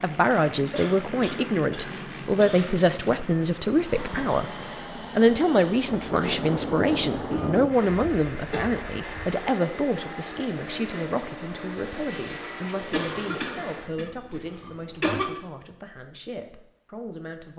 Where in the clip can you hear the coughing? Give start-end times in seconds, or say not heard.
0.7-2.8, 7.3-9.3, 12.9-15.4.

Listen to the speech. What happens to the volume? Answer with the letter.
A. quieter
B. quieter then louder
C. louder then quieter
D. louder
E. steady
A.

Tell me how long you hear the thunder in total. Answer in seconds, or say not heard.
2 s.